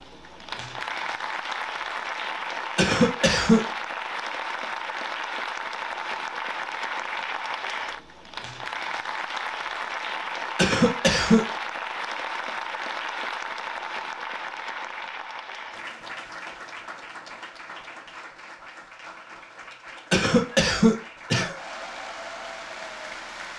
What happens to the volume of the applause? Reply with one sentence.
The volume of the applause goes down.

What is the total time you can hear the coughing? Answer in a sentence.
The coughing can be heard for 3 seconds in total.